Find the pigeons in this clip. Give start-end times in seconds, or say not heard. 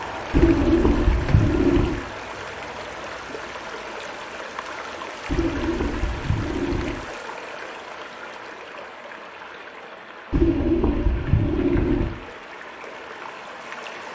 0.3-1.9, 5.2-7.0, 10.3-12.1.